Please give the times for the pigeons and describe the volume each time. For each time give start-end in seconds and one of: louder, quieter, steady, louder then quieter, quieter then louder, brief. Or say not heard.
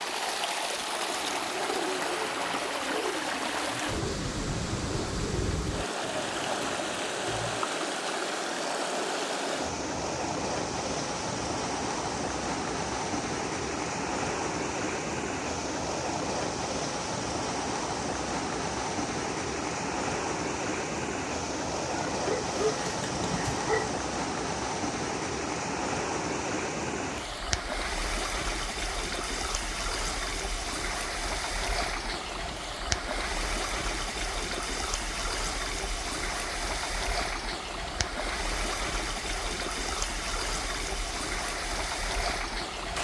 0.9-7.7 quieter.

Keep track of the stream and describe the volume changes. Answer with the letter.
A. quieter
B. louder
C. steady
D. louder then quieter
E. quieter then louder
C.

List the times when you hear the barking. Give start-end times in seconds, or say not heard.
22.1-23.9.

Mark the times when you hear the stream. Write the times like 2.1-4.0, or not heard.
0.0-42.9.